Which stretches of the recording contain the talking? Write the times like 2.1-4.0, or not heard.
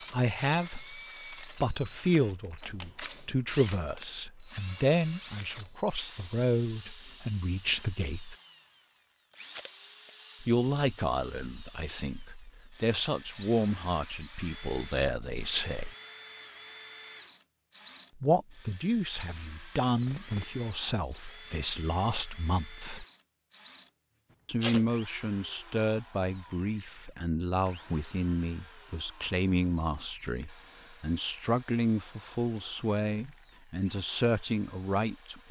0.1-8.3, 10.4-15.9, 18.1-23.1, 24.4-35.4.